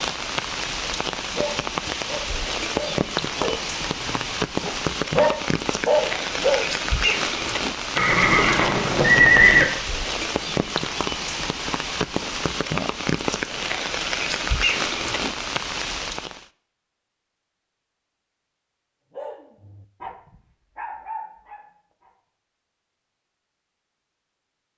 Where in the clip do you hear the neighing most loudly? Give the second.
9 s.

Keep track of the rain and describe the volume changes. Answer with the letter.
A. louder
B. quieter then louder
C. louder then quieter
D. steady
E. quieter
D.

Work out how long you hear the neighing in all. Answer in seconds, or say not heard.
2 s.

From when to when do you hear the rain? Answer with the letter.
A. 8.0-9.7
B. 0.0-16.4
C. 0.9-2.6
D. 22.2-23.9
B.